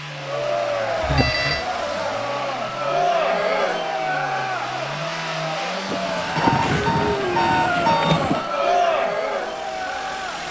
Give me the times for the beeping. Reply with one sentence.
You can hear the beeping from 1.0 to 1.6 s and from 5.8 to 8.5 s.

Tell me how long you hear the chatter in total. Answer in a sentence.
The chatter can be heard for 10 seconds in total.